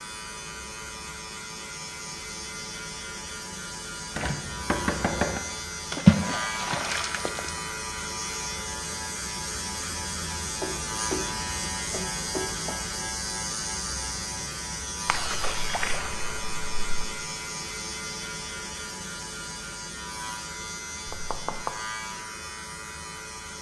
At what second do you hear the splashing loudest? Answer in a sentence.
The loudest moment of the splashing is at 6 seconds.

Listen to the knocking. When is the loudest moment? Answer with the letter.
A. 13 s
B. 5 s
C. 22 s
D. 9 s
B.